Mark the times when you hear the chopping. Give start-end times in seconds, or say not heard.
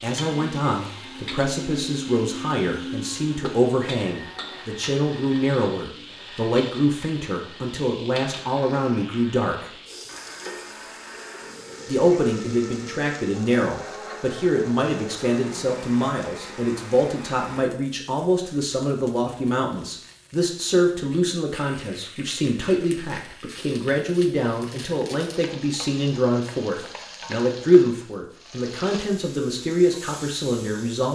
not heard.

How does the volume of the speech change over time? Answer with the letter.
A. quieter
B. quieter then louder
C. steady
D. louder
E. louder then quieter
C.